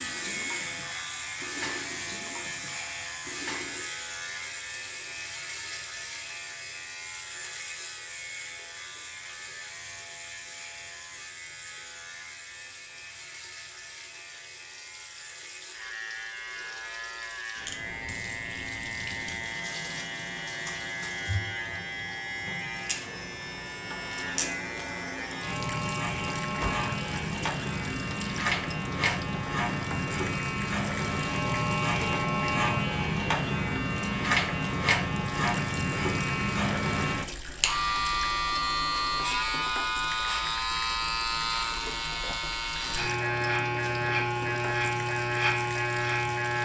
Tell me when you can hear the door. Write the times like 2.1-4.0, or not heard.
26.4-26.9.